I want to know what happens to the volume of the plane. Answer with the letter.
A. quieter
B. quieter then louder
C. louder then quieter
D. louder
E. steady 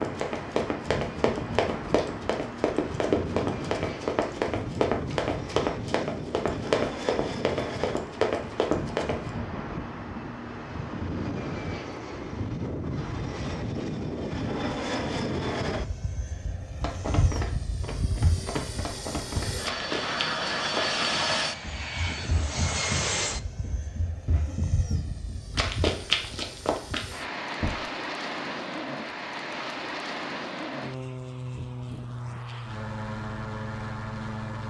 E.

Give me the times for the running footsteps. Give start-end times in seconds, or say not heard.
0.0-9.3, 16.8-27.8.